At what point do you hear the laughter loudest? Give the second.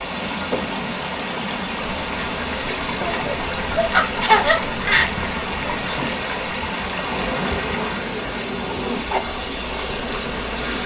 4 s.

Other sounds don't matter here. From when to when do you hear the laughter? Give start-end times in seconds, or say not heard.
3.0-5.2.